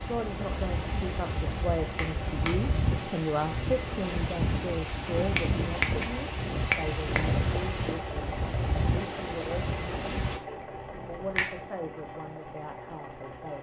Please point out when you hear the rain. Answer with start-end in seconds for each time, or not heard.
0.0-10.4.